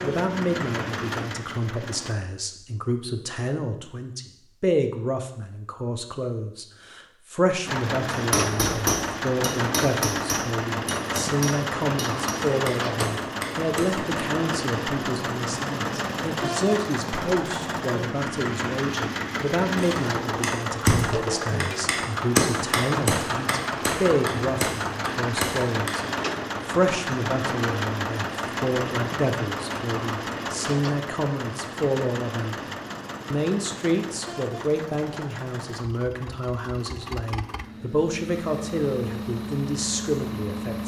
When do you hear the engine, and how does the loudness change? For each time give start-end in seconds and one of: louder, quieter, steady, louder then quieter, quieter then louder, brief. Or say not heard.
0.0-2.1 brief
7.7-40.8 quieter.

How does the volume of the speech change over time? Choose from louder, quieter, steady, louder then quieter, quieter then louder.
steady.